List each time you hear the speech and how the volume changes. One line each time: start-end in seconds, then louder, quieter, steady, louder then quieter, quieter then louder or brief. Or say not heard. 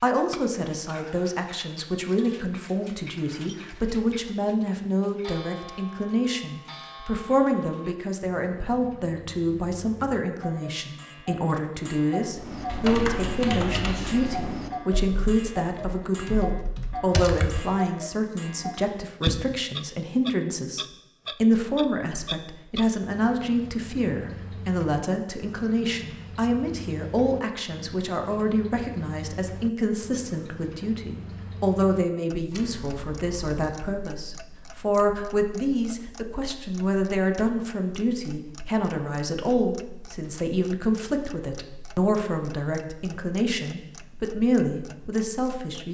0.0-45.9 steady.